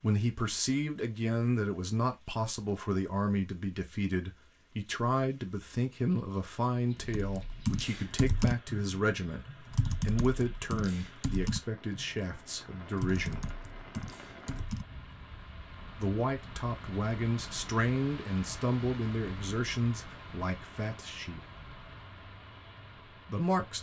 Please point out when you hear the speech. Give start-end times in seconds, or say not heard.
0.0-13.5, 15.9-21.4, 23.2-23.7.